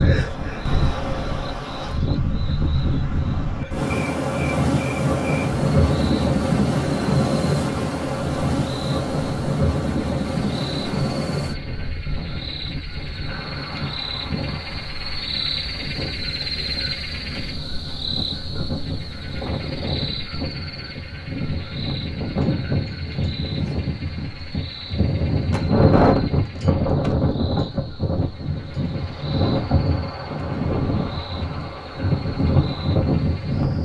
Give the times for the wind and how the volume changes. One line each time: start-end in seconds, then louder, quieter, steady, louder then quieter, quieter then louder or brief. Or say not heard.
0.0-33.8 quieter then louder.